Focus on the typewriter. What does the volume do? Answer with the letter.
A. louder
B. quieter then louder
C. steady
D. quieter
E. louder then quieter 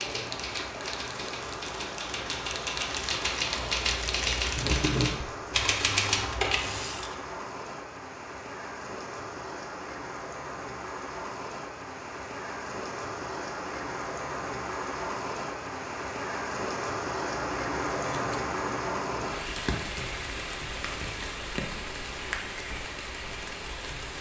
A.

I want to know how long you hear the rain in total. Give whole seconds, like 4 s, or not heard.
24 s.